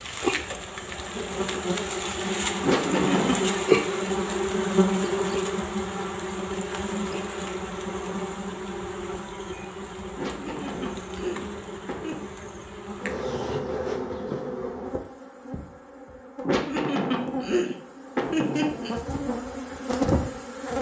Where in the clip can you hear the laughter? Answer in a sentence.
The laughter can be heard from 2.6 to 3.5 s, from 10.2 to 12.2 s and from 16.4 to 18.9 s.